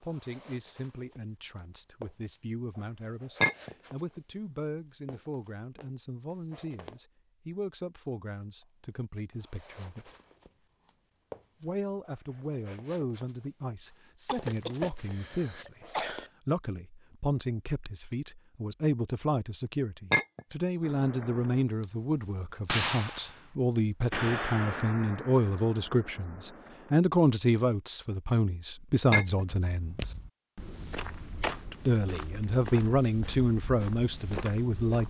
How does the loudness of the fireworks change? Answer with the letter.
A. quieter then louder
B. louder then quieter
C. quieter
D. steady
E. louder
B.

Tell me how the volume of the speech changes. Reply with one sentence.
The volume of the speech goes up.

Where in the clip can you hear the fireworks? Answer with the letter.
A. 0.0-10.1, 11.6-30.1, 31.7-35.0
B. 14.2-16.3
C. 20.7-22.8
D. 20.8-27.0
D.